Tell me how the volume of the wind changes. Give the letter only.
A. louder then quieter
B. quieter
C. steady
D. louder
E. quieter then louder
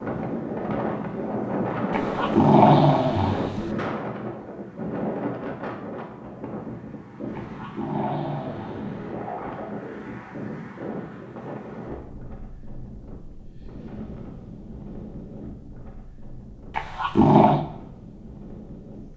B.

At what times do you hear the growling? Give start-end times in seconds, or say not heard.
1.9-3.7, 7.3-9.2, 16.8-17.6.